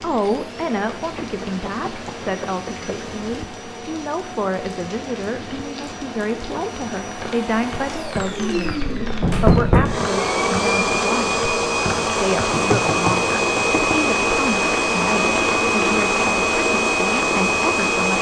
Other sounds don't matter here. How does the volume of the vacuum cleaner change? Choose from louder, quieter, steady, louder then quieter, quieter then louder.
louder.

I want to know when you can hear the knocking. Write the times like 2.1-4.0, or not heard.
0.9-2.9, 9.2-10.0, 12.5-14.1.